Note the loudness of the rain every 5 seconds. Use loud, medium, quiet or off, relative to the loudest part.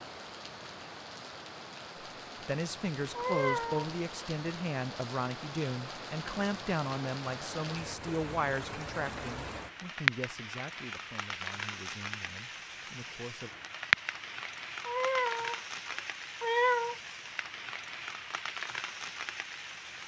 medium, medium, loud, medium.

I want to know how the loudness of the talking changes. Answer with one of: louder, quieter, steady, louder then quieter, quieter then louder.
quieter.